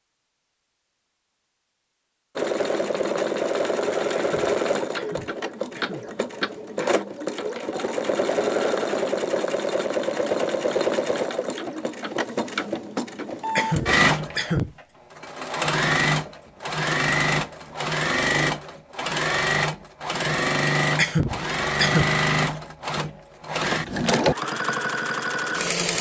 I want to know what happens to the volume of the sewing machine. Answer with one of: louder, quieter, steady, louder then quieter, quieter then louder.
steady.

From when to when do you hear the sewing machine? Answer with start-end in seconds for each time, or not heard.
2.4-25.9.